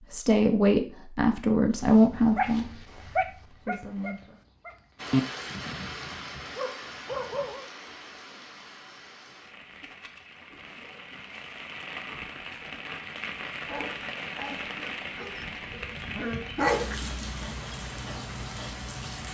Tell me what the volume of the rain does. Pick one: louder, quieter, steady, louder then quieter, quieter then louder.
quieter then louder.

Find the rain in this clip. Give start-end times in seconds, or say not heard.
5.0-19.3.